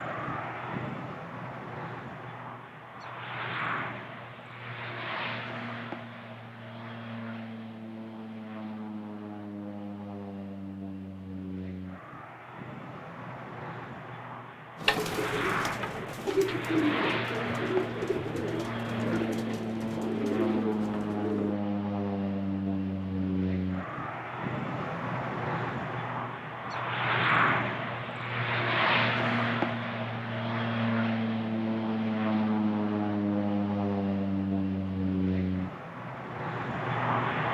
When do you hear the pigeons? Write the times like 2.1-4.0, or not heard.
14.8-21.6.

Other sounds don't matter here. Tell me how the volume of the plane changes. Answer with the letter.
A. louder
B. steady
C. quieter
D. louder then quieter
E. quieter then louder
A.